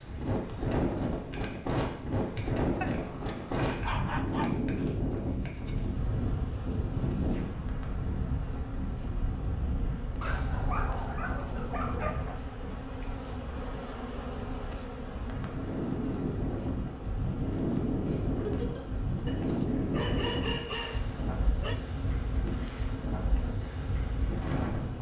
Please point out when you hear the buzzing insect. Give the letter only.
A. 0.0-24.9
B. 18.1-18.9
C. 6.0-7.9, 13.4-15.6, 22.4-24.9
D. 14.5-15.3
A.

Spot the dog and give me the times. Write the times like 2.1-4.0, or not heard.
2.8-4.7, 10.2-12.4, 19.2-21.8.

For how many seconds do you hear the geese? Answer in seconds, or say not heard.
not heard.